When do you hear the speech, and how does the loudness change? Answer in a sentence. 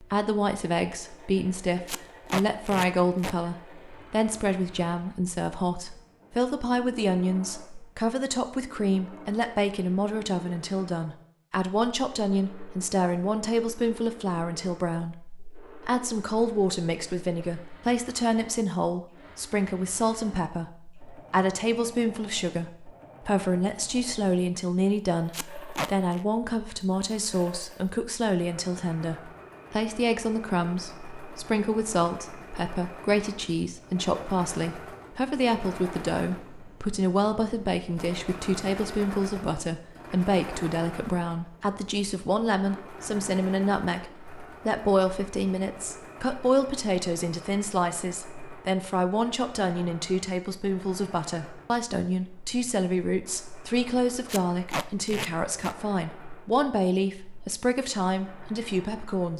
The speech can be heard from 0.0 to 59.3 s, at a steady volume.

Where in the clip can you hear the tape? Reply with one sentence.
You can hear the tape from 1.9 to 3.4 s, from 25.3 to 26.2 s and from 54.2 to 55.8 s.